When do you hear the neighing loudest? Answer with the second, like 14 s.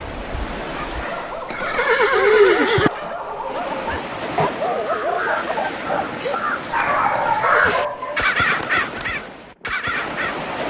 2 s.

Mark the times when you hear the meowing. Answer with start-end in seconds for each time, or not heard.
not heard.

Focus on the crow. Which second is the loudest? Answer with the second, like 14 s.
8 s.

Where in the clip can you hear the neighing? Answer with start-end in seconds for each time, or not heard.
1.5-2.9, 7.1-7.8.